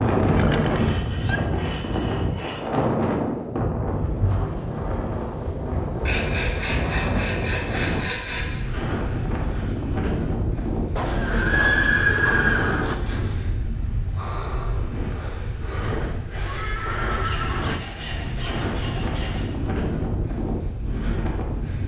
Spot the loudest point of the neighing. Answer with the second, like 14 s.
12 s.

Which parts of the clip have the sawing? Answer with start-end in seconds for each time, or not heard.
0.7-2.7, 6.0-8.7, 11.0-13.4, 17.1-19.5.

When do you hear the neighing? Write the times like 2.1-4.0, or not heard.
0.3-1.4, 10.9-12.9, 16.4-17.9.